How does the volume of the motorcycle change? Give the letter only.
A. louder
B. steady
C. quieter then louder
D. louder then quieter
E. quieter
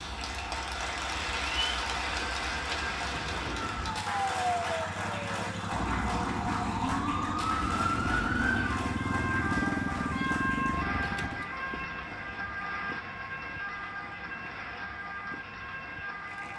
A.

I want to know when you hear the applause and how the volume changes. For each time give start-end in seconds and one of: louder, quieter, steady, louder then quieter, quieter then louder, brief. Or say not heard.
0.0-16.5 quieter.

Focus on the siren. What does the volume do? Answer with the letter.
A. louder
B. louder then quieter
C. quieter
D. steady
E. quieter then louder
B.